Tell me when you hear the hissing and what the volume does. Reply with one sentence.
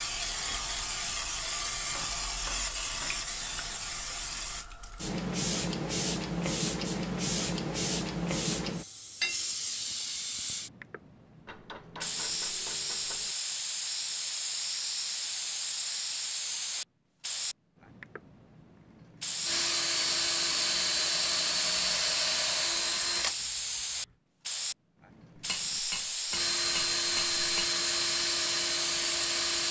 You can hear the hissing from 0.0 to 29.6 s, at a steady volume.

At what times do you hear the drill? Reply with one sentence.
The drill can be heard from 19.4 to 23.5 s and from 26.3 to 29.6 s.